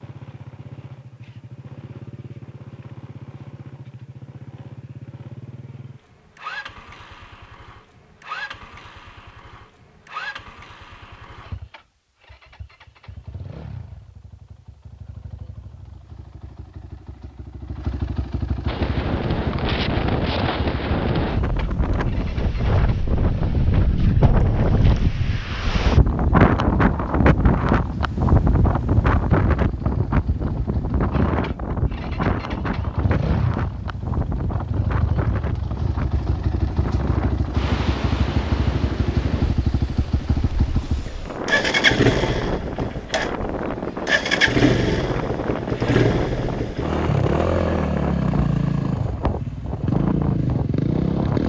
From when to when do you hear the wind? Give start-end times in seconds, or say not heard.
18.6-51.4.